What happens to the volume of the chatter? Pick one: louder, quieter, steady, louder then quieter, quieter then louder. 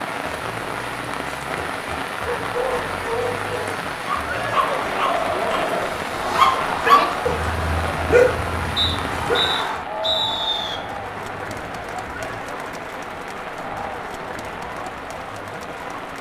quieter.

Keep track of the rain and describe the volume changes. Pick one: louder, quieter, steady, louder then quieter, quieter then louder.
quieter.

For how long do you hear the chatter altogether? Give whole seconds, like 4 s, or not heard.
12 s.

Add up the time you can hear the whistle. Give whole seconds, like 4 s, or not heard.
2 s.